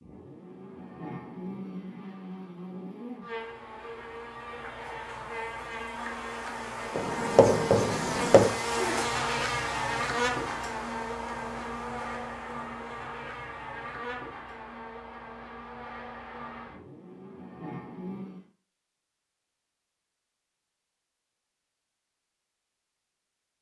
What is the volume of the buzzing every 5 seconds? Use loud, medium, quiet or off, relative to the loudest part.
medium, loud, loud, medium, off.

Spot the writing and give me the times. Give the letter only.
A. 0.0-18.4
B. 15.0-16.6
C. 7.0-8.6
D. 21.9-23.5
C.